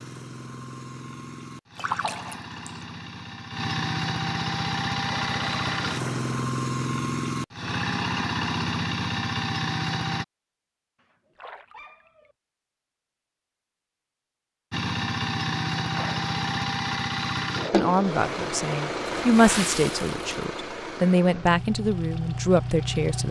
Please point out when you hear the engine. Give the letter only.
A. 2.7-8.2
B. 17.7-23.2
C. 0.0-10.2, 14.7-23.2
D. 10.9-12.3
C.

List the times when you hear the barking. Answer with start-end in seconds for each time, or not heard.
10.9-12.3.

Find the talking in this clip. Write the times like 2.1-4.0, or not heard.
17.7-23.2.